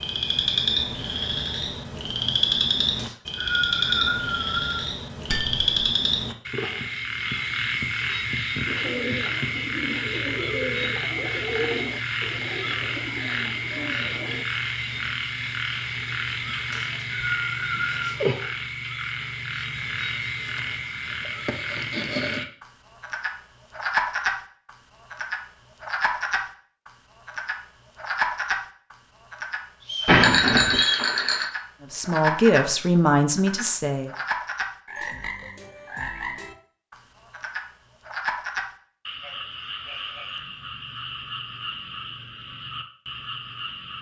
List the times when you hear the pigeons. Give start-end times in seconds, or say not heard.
8.7-14.4.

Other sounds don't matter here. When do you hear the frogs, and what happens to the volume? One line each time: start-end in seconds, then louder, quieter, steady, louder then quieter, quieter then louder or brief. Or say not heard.
0.0-43.9 quieter.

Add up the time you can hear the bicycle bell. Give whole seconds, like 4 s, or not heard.
2 s.